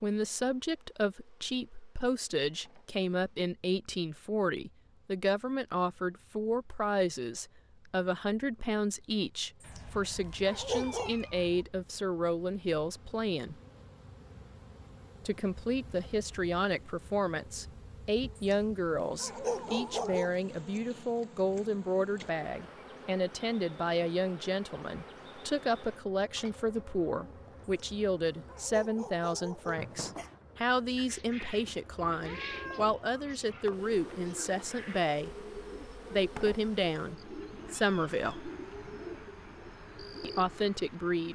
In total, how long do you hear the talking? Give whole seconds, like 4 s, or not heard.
37 s.